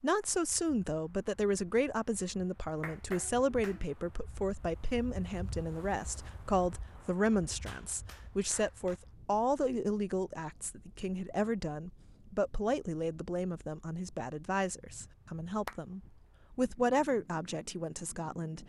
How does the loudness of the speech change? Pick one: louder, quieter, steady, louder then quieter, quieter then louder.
steady.